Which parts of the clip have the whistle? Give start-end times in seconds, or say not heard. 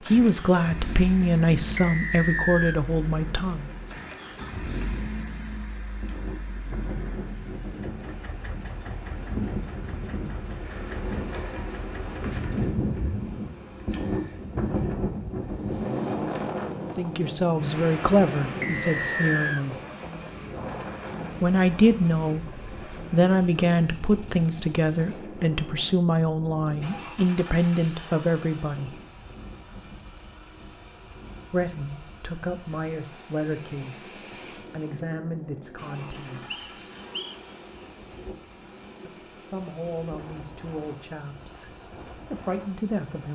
1.8-2.8, 18.6-19.6, 36.1-37.4.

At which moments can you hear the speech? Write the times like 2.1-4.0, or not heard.
0.1-3.7, 16.9-19.8, 21.4-29.0, 31.5-36.8, 39.0-43.3.